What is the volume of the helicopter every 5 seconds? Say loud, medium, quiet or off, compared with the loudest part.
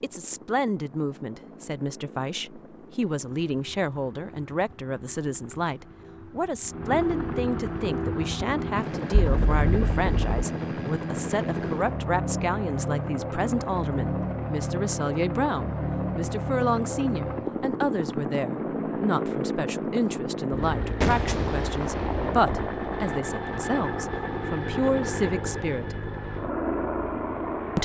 quiet, loud, loud, loud, loud, loud.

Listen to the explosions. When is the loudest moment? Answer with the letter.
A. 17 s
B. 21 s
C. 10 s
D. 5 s
B.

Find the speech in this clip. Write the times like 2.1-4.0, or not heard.
0.0-25.9.